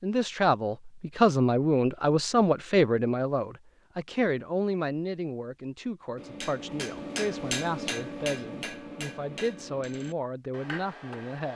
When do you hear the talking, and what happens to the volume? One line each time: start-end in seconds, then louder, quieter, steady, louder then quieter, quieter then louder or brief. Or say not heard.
0.0-11.5 quieter.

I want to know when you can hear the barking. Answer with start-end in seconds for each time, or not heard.
not heard.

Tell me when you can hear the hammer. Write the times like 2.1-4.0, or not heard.
6.2-11.5.